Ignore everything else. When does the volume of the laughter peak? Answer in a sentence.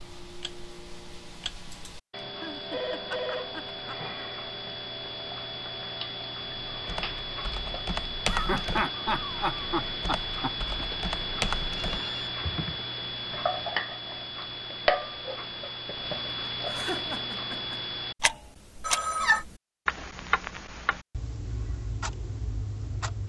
The volume of the laughter peaks at 9 seconds.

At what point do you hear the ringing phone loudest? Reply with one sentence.
The loudest moment of the ringing phone is at 19 seconds.